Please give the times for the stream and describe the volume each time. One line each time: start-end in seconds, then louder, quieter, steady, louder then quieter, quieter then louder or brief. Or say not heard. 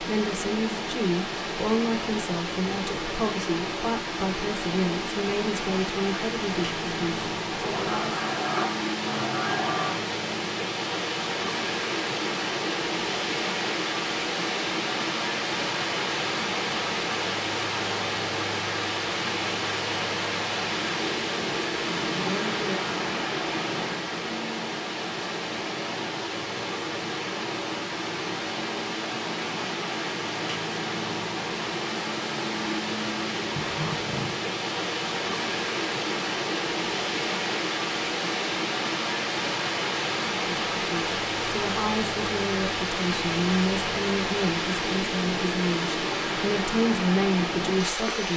0.0-48.3 steady.